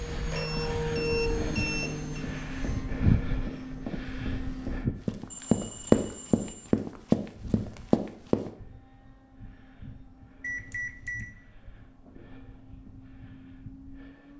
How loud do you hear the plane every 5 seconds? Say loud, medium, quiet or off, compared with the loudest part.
loud, quiet, quiet.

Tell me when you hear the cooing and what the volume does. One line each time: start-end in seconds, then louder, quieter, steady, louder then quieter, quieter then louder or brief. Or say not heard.
not heard.